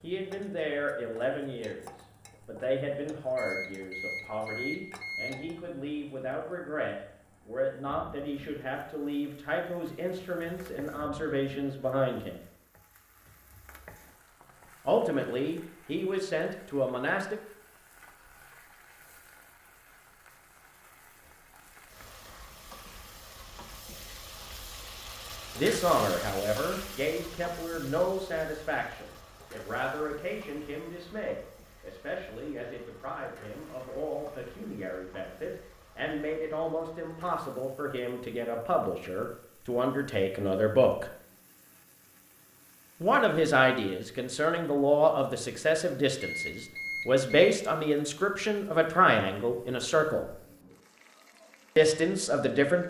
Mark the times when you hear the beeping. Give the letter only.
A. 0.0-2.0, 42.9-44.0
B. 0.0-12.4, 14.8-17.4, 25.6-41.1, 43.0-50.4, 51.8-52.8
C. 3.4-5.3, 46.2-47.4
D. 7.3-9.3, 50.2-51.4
C.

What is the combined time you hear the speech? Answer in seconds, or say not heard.
39 s.